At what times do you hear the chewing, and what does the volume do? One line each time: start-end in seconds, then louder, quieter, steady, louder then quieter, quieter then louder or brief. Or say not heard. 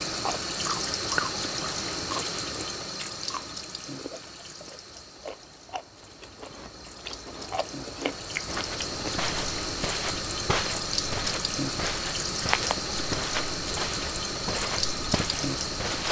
0.1-9.2 quieter then louder.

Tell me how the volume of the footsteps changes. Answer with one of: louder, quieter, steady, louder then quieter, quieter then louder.
steady.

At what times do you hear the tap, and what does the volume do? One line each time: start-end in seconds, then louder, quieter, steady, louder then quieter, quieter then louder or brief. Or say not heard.
0.0-16.0 quieter then louder.